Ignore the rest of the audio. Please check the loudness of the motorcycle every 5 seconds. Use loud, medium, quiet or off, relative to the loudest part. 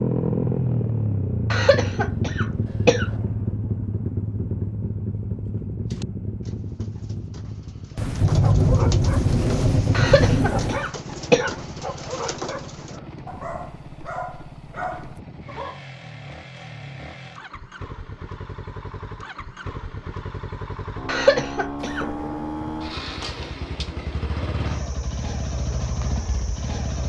loud, medium, quiet, quiet, medium, medium.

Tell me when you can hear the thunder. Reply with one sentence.
You can hear the thunder from 8.0 to 10.9 s and from 21.8 to 23.5 s.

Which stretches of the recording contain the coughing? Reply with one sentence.
The coughing can be heard from 1.5 to 3.1 s, from 9.9 to 11.5 s and from 21.1 to 22.1 s.